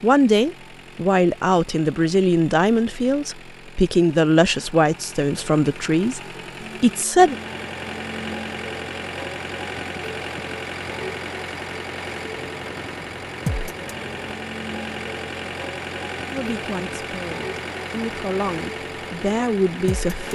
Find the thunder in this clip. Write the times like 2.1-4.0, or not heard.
not heard.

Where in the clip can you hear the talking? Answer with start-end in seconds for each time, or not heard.
0.0-6.2, 6.8-7.3, 16.3-20.3.